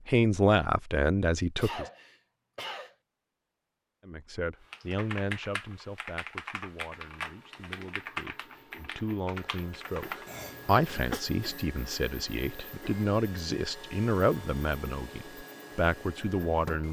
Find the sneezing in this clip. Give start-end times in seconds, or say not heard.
1.6-3.0, 10.2-11.2.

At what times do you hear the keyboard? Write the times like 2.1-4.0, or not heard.
4.7-10.3.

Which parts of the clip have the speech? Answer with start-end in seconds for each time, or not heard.
0.1-1.9, 4.0-16.8.